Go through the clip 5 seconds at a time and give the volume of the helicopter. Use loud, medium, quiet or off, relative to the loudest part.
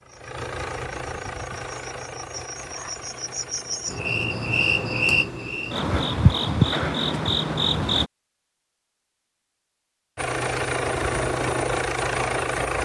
medium, off, loud.